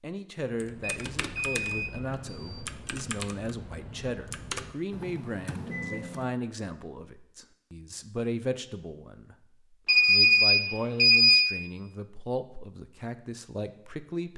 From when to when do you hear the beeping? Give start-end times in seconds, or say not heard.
0.8-2.6, 5.7-6.1, 9.8-11.5.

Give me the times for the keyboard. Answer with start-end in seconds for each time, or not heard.
0.5-6.3.